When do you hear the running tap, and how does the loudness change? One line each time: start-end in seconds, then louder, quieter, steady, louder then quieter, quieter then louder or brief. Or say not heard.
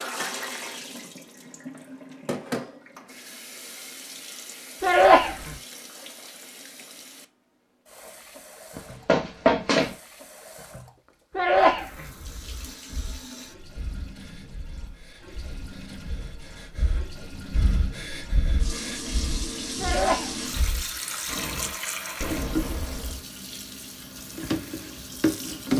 0.0-25.7 quieter then louder.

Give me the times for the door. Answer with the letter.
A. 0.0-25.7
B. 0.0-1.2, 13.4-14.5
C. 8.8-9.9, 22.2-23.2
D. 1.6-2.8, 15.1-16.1
C.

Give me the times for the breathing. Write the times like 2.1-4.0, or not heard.
12.0-21.8.